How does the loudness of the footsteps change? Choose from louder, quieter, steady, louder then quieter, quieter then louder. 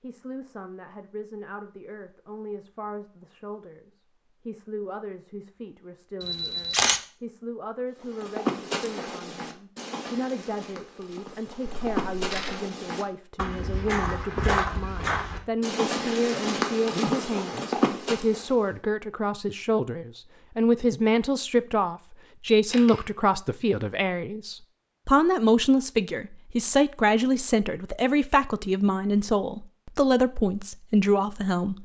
louder.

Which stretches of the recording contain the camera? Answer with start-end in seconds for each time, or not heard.
6.2-7.0, 11.7-12.6, 22.5-23.1.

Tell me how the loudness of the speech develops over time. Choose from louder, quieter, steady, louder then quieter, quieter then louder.
louder.